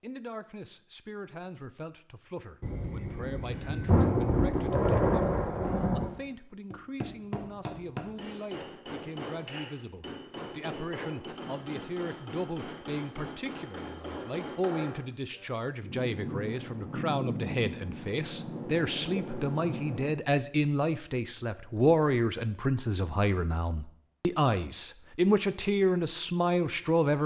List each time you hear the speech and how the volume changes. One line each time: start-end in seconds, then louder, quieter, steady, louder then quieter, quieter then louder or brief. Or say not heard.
0.0-27.2 louder.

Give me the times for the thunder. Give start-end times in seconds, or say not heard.
2.6-6.1, 15.8-20.1.